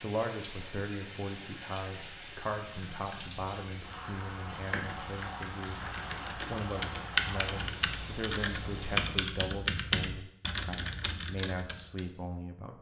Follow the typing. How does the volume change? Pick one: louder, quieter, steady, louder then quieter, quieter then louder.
louder then quieter.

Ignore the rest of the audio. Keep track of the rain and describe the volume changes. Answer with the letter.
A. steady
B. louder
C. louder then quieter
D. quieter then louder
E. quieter
A.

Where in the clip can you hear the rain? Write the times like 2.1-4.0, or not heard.
0.0-9.1.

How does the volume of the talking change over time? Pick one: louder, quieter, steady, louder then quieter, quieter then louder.
steady.